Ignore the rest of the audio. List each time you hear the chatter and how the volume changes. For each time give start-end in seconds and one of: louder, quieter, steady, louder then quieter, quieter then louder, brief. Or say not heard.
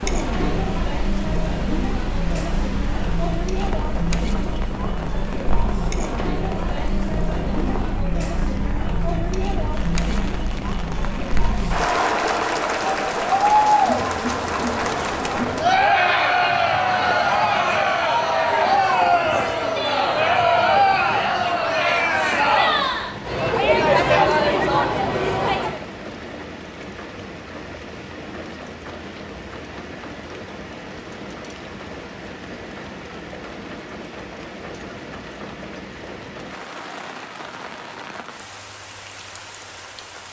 0.0-25.8 louder.